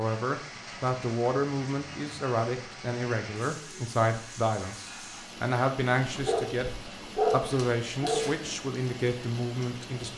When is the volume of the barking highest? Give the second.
7 s.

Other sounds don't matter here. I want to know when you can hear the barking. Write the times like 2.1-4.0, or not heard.
6.0-8.5.